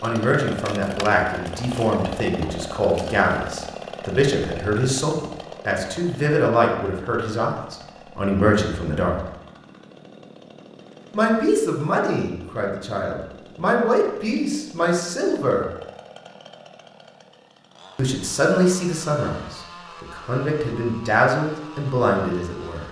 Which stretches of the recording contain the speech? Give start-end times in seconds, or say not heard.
0.0-9.2, 11.1-15.7, 17.9-22.8.